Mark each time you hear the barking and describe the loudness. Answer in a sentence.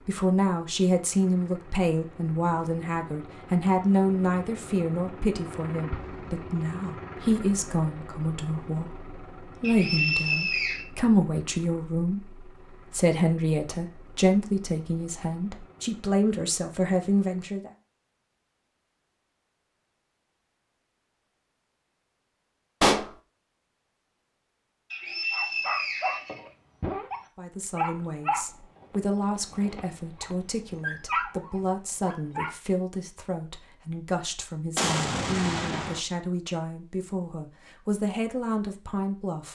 You can hear the barking from 25.3 to 32.5 s, getting quieter then louder.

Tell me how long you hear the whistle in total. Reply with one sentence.
You can hear the whistle for 3 seconds altogether.